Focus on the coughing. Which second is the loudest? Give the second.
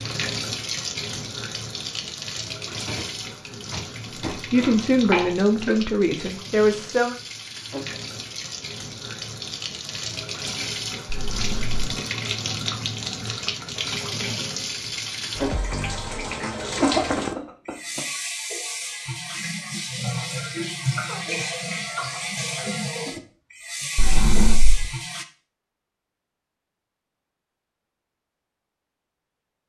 17 s.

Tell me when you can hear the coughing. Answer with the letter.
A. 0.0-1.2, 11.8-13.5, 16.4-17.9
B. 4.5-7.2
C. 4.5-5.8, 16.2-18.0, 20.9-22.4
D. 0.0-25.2
C.